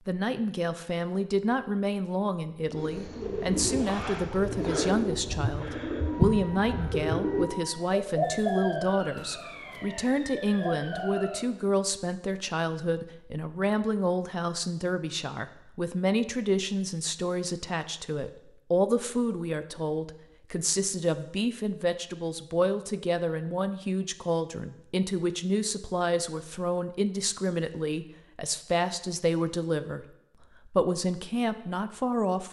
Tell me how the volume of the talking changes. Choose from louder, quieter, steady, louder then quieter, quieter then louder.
steady.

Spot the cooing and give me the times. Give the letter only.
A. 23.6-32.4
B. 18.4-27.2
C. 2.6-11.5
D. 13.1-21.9
C.